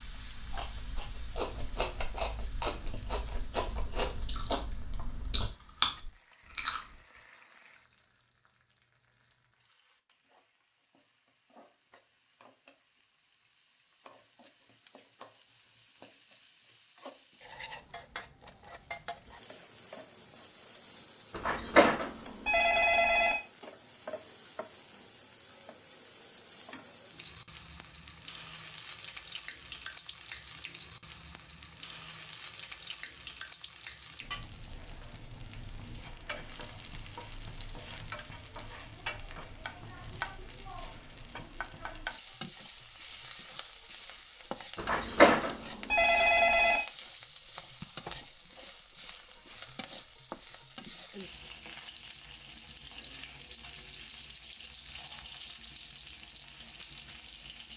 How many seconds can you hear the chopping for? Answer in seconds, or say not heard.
not heard.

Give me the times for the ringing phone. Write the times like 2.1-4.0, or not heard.
21.3-23.4, 44.8-46.8.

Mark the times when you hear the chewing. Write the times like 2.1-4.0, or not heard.
0.0-6.8.